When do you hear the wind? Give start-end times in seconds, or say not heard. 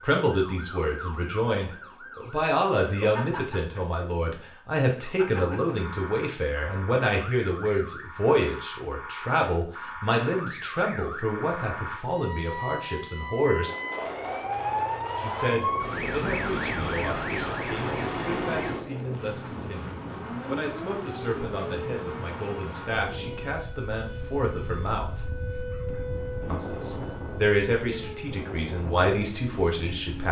13.6-30.2.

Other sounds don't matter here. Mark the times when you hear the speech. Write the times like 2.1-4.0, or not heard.
0.0-13.8, 15.2-25.3, 26.4-30.2.